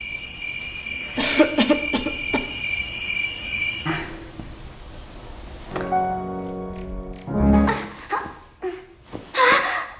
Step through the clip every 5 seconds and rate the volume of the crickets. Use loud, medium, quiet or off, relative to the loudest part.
medium, loud.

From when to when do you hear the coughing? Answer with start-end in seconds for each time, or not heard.
1.1-2.5.